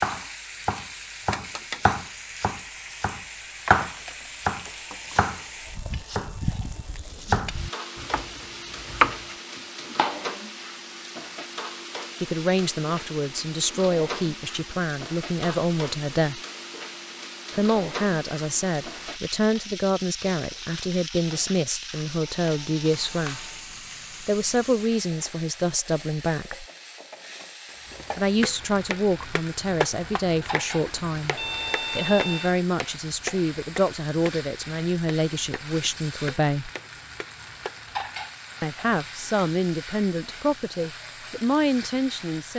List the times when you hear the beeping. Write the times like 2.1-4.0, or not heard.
4.6-7.1, 22.1-23.7, 31.3-32.5.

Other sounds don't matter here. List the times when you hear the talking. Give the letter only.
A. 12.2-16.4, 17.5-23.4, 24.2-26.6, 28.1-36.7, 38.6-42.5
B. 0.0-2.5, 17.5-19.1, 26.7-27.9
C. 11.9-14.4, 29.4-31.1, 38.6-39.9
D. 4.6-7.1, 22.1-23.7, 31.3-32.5
A.